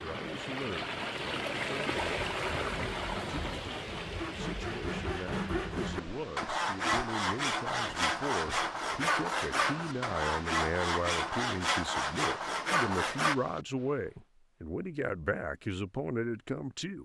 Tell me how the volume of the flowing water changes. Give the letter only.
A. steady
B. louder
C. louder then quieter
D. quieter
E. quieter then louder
D.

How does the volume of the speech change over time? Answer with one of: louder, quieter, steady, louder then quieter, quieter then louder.
louder.